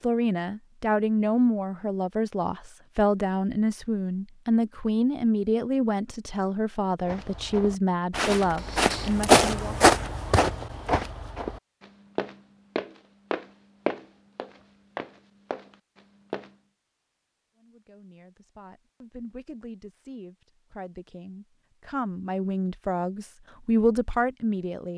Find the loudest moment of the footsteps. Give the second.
9 s.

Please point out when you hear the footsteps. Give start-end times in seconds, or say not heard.
7.0-16.5.